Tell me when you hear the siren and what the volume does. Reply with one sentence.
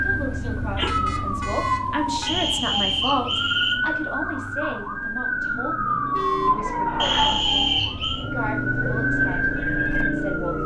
The siren can be heard from 0.0 to 10.6 s, at a steady volume.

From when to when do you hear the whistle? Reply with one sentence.
You can hear the whistle from 2.2 to 3.8 s and from 7.0 to 8.2 s.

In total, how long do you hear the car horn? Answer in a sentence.
The car horn can be heard for 2 seconds in total.